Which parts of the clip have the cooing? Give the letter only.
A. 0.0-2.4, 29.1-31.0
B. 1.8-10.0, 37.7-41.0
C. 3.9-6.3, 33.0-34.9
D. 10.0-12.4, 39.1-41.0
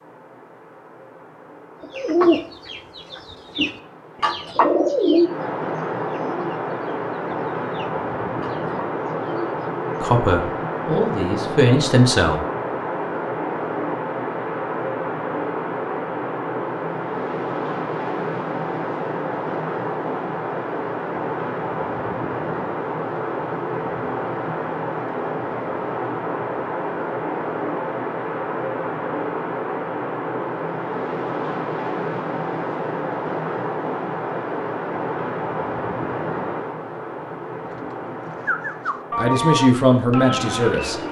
B.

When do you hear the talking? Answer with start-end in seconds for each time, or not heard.
10.0-12.4, 39.1-41.0.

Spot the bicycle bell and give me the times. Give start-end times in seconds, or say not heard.
not heard.